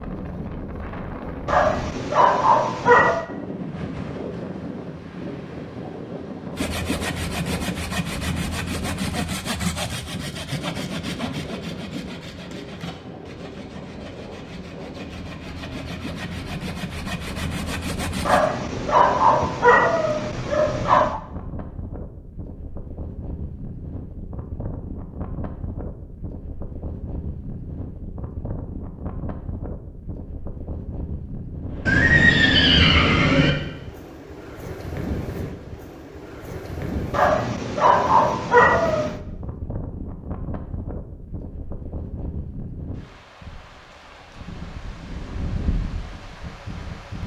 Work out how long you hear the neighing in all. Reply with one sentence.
The neighing can be heard for 2 seconds in total.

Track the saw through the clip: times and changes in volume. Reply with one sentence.
The saw can be heard from 6.5 to 18.5 s, getting quieter then louder.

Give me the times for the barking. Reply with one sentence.
The barking can be heard from 1.4 to 3.2 s, from 18.2 to 21.2 s and from 37.1 to 39.1 s.